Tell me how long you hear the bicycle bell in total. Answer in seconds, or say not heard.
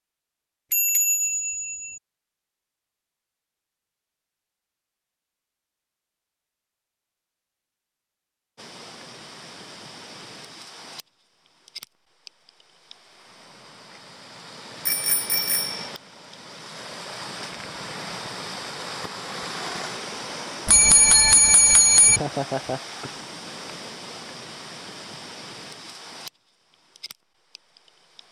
4 s.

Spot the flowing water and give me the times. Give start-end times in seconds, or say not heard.
8.6-28.2.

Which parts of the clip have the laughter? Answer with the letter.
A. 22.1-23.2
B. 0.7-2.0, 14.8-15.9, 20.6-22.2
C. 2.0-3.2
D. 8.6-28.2
A.